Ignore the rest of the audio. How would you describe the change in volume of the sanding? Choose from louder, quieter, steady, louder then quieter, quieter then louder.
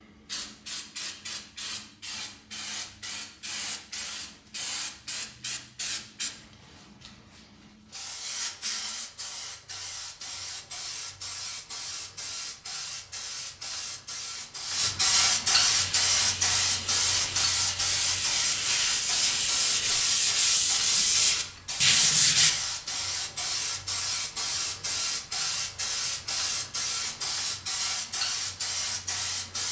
louder.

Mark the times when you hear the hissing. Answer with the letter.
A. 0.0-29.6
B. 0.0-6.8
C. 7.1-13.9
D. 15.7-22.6
A.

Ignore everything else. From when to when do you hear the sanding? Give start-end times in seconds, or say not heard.
15.7-22.6.